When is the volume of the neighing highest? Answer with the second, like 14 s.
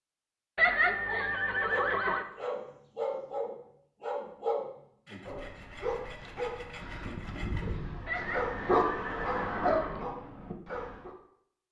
1 s.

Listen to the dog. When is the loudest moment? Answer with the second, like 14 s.
9 s.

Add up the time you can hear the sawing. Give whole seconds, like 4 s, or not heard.
3 s.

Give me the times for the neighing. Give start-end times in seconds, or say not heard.
0.6-2.2, 8.1-10.1.